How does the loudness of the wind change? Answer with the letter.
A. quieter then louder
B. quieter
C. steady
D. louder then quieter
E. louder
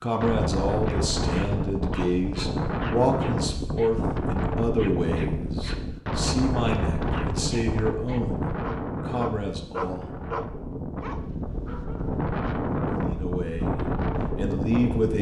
A.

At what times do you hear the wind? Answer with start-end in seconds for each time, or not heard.
0.0-15.1.